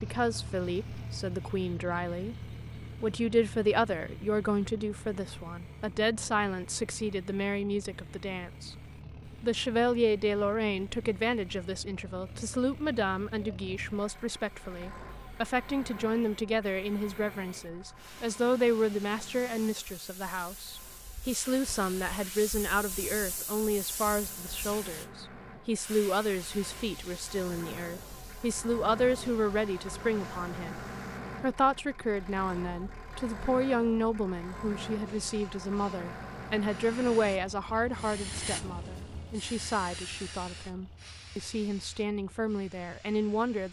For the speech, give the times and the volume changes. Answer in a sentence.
The speech can be heard from 0.0 to 43.6 s, at a steady volume.